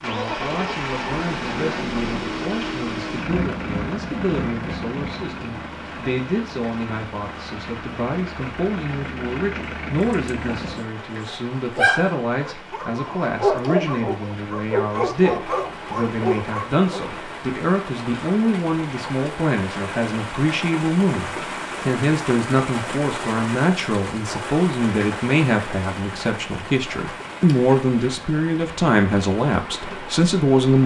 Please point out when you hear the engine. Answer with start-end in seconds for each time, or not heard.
0.0-10.8.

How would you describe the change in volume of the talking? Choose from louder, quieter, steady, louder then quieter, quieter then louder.
louder.